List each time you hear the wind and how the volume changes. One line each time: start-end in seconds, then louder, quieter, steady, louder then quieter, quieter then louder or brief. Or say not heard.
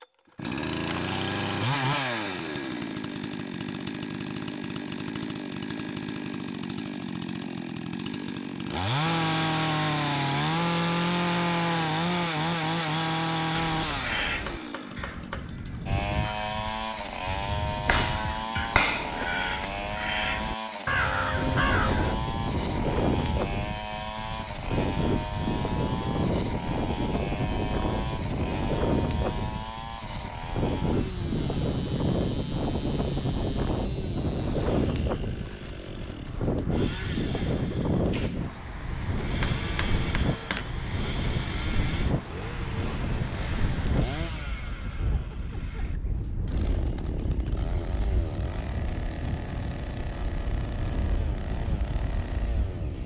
21.4-53.0 quieter.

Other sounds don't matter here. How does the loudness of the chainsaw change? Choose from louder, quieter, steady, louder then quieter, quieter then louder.
quieter.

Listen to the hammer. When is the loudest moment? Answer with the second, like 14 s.
19 s.